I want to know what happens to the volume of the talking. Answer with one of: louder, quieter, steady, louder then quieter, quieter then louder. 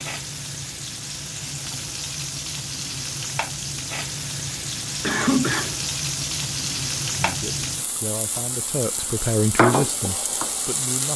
louder then quieter.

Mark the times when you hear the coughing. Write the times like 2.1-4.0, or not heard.
5.0-5.9.